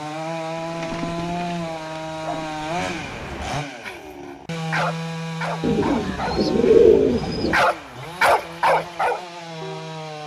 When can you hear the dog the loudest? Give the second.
8 s.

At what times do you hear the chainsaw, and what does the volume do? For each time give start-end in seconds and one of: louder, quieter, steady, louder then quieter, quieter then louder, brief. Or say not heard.
0.0-10.2 quieter.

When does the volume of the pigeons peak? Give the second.
7 s.